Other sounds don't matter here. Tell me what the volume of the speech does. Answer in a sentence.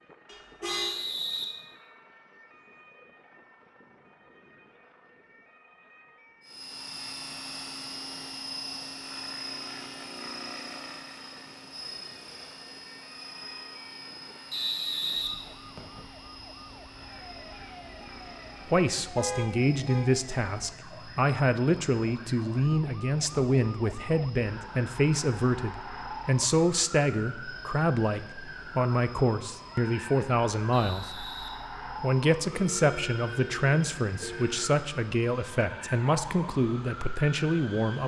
The loudness of the speech stays about the same.